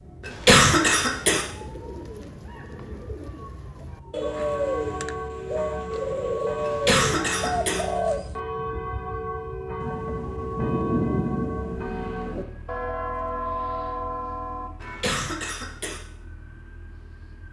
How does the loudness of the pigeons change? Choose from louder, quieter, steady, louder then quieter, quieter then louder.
louder.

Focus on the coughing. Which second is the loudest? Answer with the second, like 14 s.
1 s.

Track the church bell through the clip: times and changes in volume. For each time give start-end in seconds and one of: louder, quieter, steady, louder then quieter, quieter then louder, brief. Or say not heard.
4.2-15.2 steady.